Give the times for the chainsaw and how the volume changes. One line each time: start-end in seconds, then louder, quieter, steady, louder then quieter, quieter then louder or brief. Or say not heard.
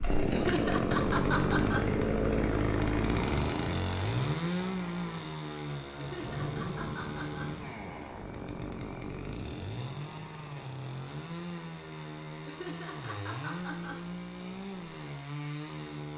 0.0-16.1 quieter.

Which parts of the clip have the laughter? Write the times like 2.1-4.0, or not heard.
0.3-1.8, 6.0-7.5, 12.4-13.9.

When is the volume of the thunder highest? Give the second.
7 s.